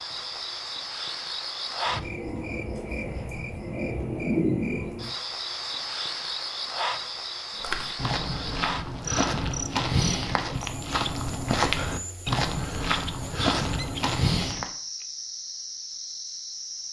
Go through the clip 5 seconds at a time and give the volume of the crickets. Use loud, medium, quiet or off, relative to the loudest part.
loud, loud, medium, medium.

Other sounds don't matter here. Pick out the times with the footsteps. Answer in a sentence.
You can hear the footsteps from 7.5 to 14.7 s.